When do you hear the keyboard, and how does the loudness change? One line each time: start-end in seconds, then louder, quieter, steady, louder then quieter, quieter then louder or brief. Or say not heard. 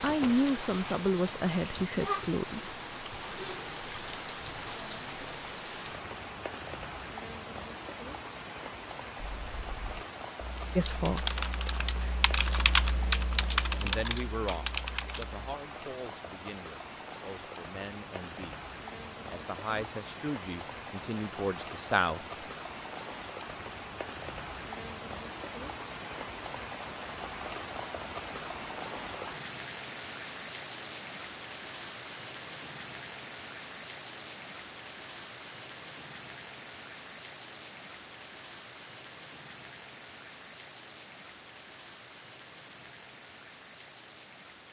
9.2-15.4 louder then quieter.